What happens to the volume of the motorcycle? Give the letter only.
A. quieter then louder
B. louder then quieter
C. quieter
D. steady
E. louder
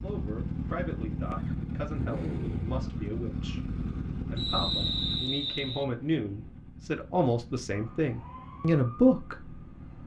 C.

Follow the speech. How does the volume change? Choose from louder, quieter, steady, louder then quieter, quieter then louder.
louder.